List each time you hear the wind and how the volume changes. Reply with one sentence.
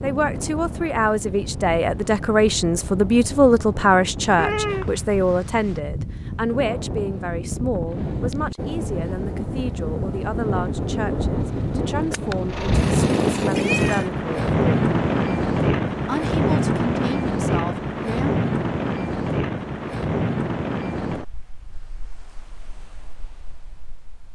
The wind can be heard from 0.0 to 24.2 s, getting louder then quieter.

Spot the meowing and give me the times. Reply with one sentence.
You can hear the meowing from 4.3 to 5.8 s and from 12.7 to 14.1 s.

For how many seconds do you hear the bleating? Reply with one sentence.
The bleating can't be heard in this clip.